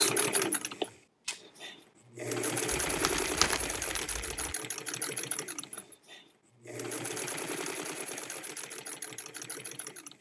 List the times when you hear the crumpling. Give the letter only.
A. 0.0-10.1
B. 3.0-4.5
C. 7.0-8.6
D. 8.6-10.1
B.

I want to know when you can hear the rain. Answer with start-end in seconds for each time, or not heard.
not heard.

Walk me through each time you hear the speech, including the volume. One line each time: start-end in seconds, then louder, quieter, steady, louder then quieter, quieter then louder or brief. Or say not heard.
not heard.